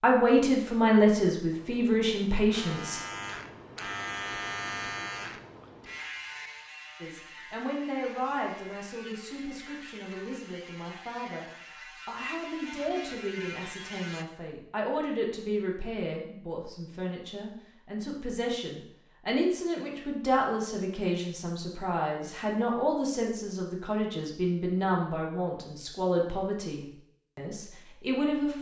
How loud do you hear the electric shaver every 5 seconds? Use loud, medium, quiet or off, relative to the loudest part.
loud, medium, medium, off, off, off.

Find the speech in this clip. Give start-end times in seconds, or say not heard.
0.0-3.0, 7.0-11.4, 12.1-28.5.